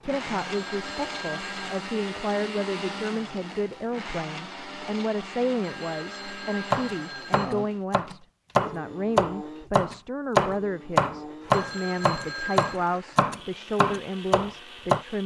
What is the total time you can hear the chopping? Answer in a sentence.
You can hear the chopping for 8 seconds altogether.